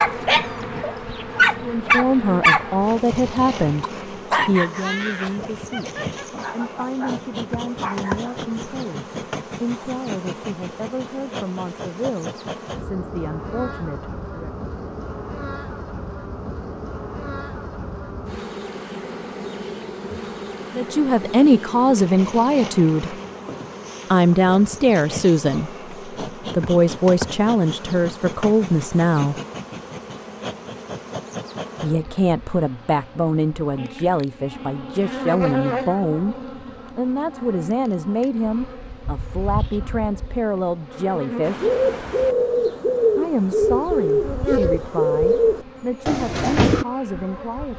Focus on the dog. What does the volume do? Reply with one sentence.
The volume of the dog goes down.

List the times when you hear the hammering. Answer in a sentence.
The hammering can't be heard in this clip.